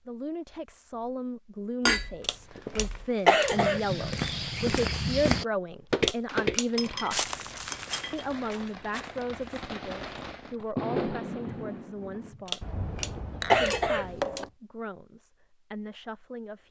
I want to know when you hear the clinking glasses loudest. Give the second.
2 s.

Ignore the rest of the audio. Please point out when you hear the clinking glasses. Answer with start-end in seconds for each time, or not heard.
1.9-3.0, 6.3-8.3, 13.4-14.5.